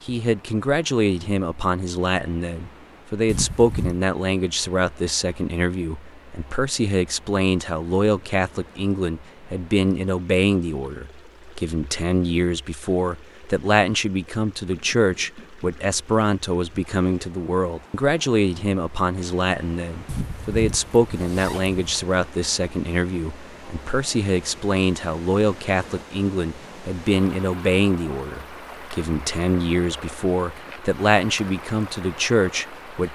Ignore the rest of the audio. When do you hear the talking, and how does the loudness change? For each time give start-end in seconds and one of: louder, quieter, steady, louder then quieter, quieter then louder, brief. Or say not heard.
0.0-33.1 steady.